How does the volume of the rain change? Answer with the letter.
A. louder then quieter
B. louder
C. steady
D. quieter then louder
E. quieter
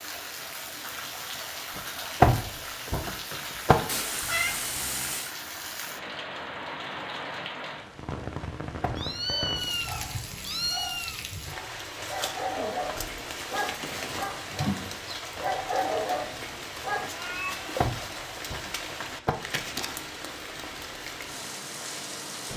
C.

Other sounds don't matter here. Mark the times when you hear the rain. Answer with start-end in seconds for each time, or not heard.
0.0-22.5.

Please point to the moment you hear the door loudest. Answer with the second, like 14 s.
2 s.